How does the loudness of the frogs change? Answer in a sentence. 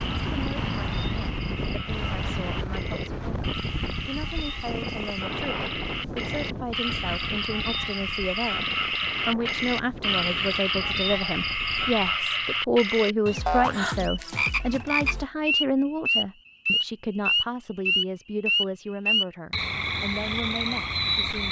The loudness of the frogs goes up.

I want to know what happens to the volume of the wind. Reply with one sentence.
The volume of the wind goes down.